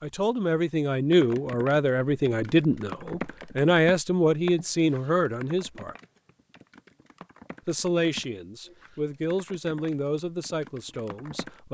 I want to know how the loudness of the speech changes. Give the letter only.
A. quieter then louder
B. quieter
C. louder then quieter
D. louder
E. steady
B.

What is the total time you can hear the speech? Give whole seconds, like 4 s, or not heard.
10 s.